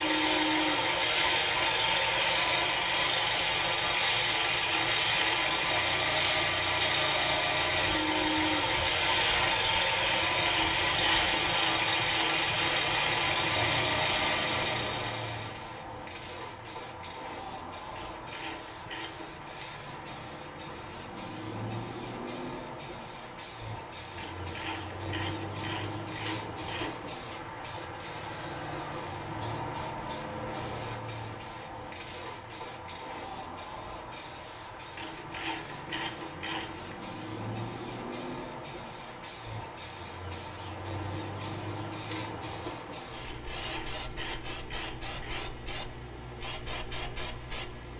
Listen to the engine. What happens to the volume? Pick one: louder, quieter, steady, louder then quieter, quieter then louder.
steady.